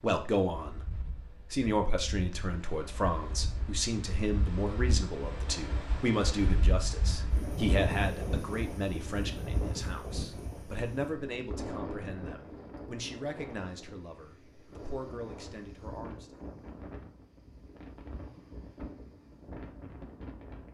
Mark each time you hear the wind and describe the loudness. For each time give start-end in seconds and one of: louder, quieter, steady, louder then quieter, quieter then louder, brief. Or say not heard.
0.0-20.6 louder then quieter.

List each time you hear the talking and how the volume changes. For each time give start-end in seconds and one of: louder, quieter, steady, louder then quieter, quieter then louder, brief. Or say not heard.
0.0-16.4 quieter.